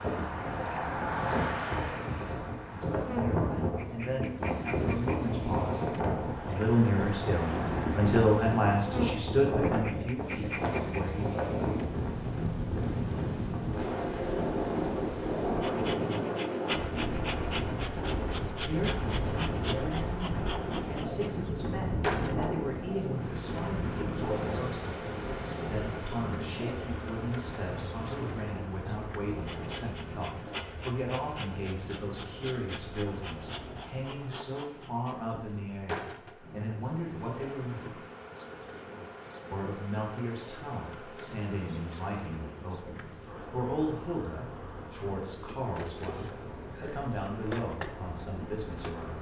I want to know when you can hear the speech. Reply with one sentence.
The speech can be heard from 2.7 to 11.3 s, from 18.6 to 38.0 s and from 39.5 to 49.1 s.